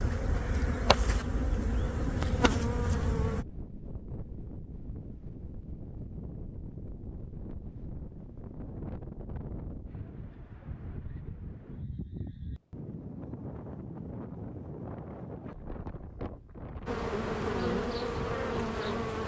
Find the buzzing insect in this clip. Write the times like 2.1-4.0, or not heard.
0.0-3.5, 16.9-19.2.